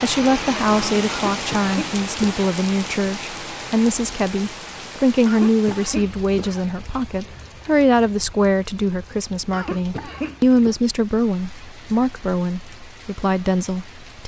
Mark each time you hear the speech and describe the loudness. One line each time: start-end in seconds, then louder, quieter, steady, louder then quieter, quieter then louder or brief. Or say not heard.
0.0-14.2 steady.